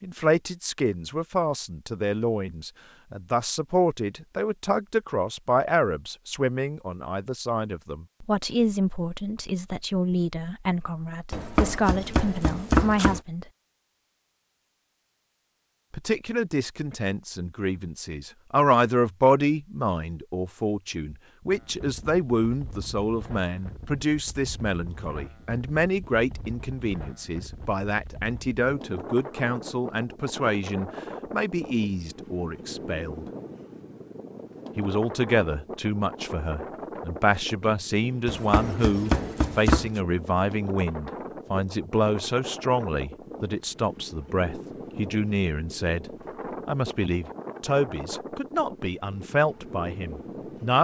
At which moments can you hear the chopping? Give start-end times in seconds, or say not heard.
11.3-13.2, 38.2-40.0.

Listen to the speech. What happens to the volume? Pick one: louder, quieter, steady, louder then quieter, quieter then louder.
steady.